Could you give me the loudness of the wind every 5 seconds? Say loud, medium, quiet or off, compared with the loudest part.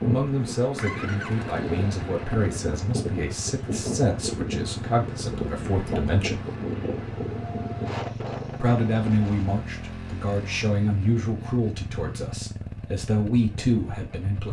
loud, loud, off.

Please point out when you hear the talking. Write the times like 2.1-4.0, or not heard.
0.0-6.4, 8.6-14.4.